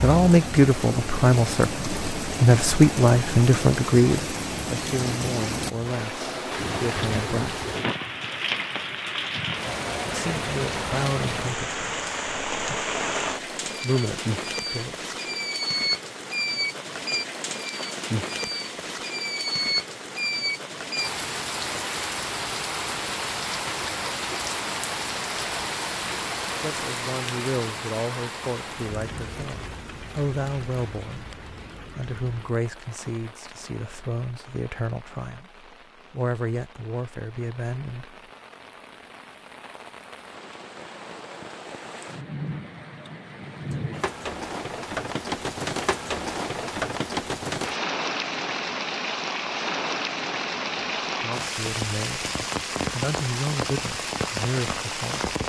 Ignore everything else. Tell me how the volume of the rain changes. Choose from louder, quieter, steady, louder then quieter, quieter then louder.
quieter then louder.